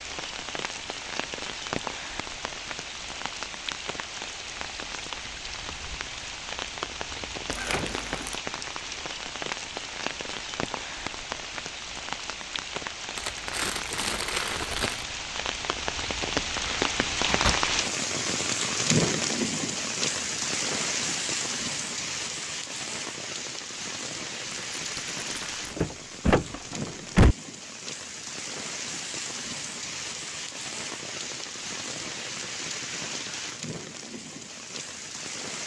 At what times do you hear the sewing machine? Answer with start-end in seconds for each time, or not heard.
not heard.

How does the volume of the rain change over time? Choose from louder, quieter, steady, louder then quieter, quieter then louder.
louder then quieter.